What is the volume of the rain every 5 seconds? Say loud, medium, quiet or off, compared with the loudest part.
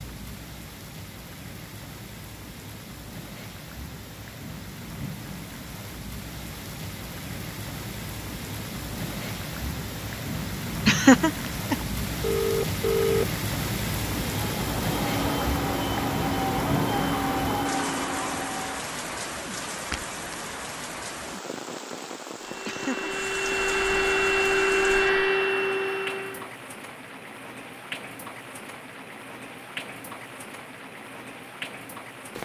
medium, medium, loud, loud, medium, medium, medium.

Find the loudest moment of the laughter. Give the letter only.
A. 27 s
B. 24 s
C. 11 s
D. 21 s
C.